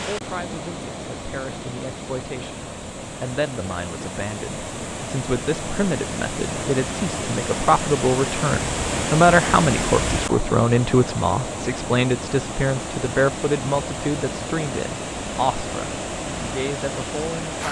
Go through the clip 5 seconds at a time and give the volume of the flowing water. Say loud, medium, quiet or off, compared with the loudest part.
medium, loud, loud, loud.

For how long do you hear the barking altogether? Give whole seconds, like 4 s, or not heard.
not heard.